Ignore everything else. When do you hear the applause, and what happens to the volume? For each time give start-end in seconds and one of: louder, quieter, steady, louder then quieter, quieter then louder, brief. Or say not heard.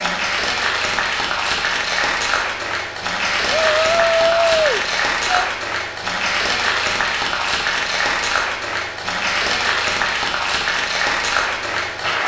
0.0-12.2 steady.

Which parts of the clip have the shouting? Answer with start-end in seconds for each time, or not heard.
3.5-5.5.